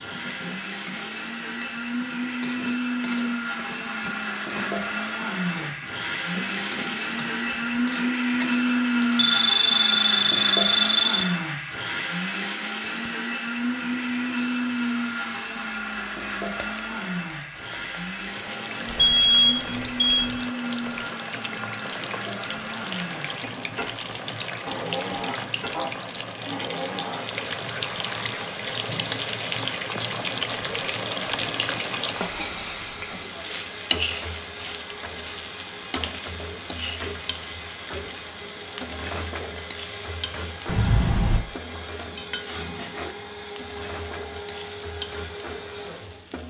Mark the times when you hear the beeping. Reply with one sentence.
You can hear the beeping from 9.0 to 11.3 s, from 18.9 to 20.4 s and from 40.6 to 41.4 s.